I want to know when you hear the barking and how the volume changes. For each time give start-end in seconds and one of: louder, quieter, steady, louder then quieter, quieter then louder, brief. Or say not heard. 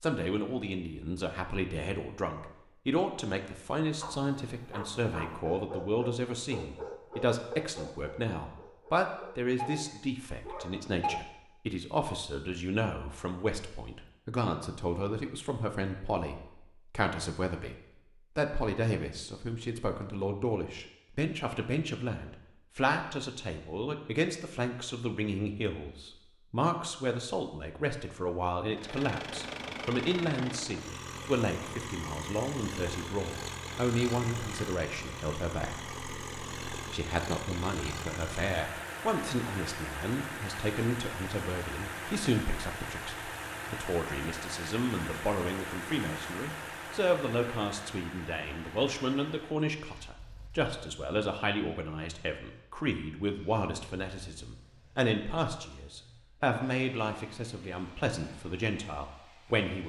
4.0-11.2 quieter then louder.